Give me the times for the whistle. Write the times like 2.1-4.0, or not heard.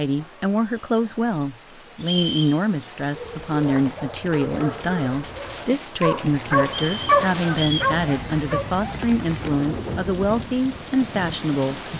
2.0-2.6, 6.7-8.0.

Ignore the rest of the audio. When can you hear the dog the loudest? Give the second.
7 s.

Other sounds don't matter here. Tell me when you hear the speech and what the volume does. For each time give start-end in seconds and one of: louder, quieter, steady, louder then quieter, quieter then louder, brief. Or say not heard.
0.0-11.8 steady.